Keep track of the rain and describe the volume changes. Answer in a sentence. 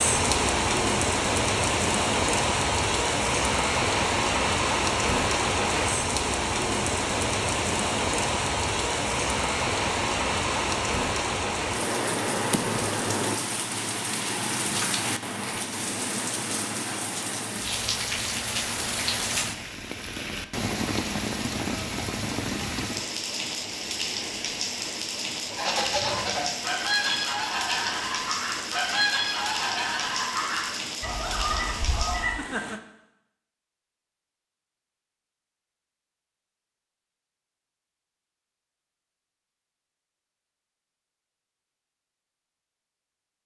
The volume of the rain goes down.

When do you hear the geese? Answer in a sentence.
You can hear the geese from 25.5 to 32.4 s.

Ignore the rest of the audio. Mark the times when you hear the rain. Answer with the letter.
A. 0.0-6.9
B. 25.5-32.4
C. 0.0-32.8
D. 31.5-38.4
C.